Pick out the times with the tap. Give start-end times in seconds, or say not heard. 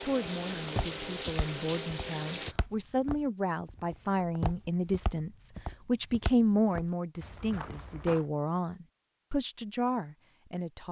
0.0-2.5.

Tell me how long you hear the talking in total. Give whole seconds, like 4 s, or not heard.
11 s.